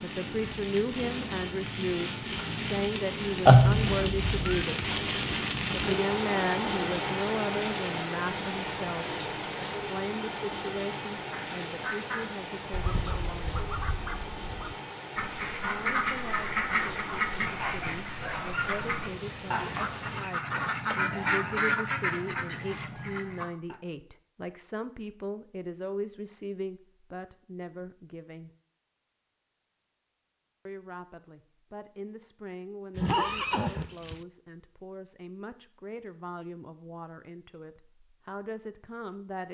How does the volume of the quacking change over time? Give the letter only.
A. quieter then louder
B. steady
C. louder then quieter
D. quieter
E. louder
E.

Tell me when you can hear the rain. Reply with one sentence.
You can hear the rain from 0.0 to 20.3 s.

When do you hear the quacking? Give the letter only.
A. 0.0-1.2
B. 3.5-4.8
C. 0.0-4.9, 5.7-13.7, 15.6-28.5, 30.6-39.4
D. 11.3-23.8
D.